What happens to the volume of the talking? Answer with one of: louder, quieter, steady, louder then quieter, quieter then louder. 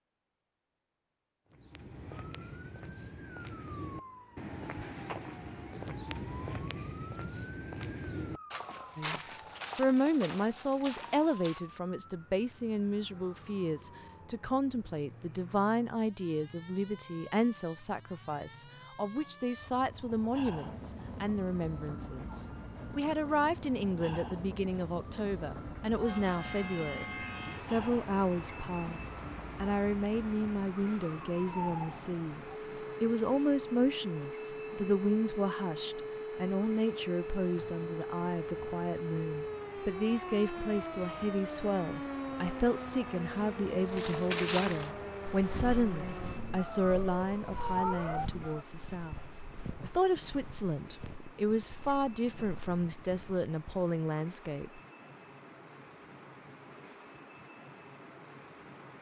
steady.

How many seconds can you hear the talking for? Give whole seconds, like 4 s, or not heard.
45 s.